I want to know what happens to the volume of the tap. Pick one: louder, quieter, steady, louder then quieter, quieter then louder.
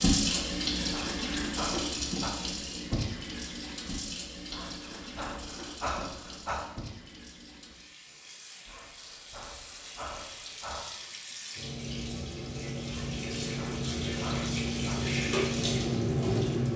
quieter then louder.